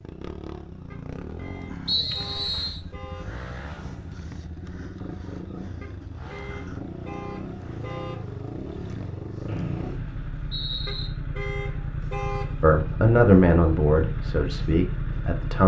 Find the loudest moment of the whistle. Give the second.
2 s.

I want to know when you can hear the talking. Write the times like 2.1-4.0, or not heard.
12.6-15.6.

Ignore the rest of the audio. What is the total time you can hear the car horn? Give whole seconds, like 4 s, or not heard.
7 s.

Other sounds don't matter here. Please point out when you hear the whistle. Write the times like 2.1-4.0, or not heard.
1.9-2.8, 9.4-11.1.